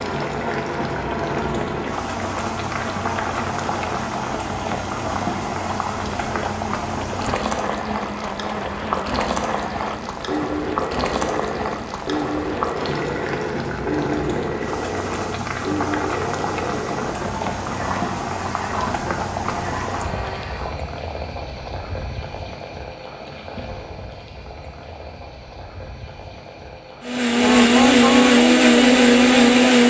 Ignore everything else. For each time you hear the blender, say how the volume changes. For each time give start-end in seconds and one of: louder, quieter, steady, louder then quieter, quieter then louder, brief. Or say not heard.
0.0-20.8 steady
27.1-29.8 brief.